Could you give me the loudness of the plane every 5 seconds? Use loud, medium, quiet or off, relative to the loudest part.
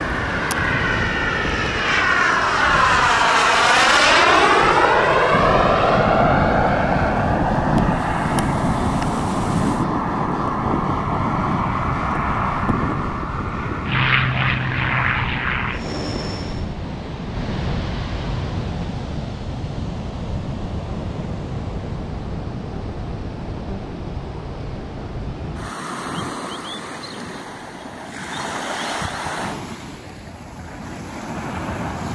loud, loud, medium, medium, off, off, off.